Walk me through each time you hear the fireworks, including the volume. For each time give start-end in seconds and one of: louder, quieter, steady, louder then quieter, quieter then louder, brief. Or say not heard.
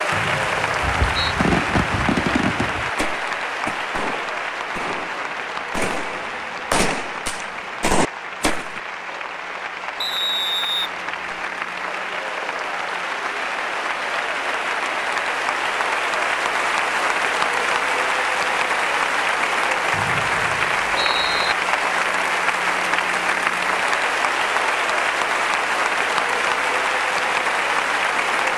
0.8-8.8 quieter then louder.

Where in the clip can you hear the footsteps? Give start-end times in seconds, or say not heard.
not heard.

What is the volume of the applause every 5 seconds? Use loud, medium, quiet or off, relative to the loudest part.
loud, medium, medium, loud, loud, loud.